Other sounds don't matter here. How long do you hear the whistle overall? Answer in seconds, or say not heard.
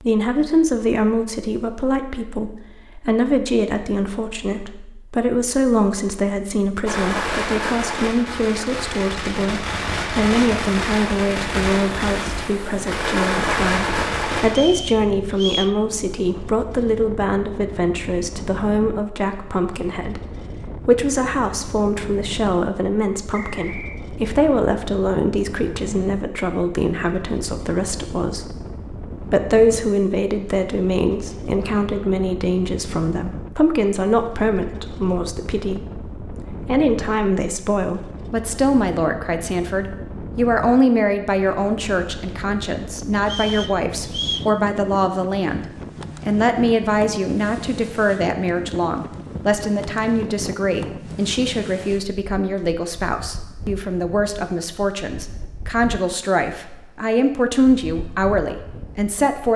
3 s.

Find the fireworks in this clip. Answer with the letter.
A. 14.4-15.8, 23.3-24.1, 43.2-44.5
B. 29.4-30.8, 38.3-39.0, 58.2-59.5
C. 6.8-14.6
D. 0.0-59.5
C.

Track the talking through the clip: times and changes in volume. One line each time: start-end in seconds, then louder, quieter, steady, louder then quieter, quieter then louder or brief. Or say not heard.
0.0-59.5 steady.